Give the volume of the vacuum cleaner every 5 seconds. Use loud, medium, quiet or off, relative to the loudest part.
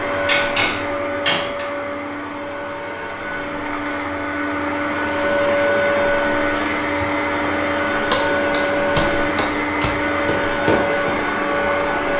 medium, loud, loud.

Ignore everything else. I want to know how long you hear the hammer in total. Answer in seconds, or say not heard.
7 s.